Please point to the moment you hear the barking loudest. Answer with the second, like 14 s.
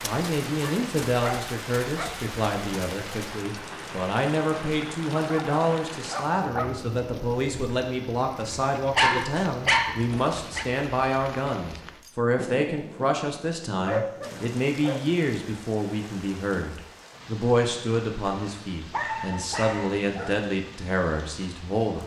9 s.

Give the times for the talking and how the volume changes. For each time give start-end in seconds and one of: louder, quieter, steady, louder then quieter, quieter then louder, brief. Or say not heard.
0.0-22.0 steady.